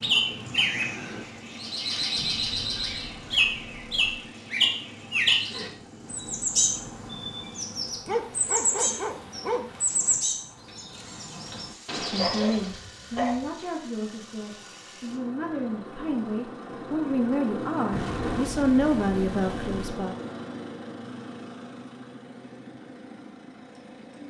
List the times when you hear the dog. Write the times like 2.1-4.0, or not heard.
8.1-10.1, 12.2-13.5.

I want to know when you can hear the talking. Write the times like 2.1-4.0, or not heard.
11.9-20.1.